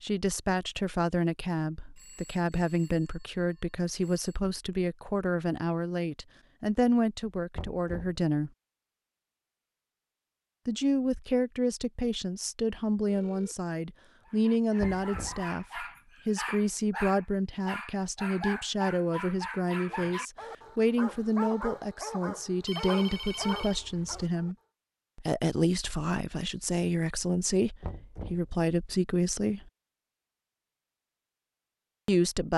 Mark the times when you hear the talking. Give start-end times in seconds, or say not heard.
0.0-8.5, 10.7-24.6, 25.1-29.7, 32.0-32.5.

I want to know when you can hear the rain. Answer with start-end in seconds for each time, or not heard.
not heard.